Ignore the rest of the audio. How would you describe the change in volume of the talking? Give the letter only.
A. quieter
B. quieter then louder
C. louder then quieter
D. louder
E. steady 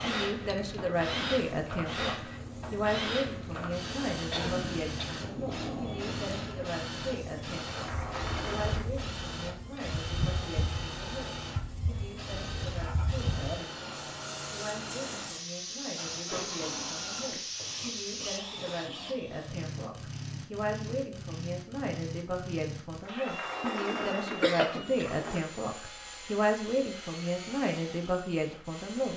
B.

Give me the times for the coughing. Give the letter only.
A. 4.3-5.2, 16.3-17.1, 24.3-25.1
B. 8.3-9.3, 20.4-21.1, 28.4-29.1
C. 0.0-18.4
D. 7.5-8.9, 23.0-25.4
A.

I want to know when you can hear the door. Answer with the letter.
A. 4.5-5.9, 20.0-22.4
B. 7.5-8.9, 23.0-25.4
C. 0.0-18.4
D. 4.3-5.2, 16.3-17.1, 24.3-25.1
B.